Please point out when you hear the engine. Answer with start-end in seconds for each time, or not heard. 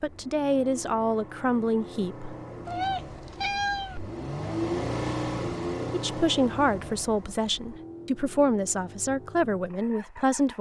0.0-10.5.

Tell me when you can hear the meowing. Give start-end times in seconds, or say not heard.
2.6-4.1.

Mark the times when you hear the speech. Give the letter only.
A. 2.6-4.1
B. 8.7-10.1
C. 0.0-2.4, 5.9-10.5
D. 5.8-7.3
C.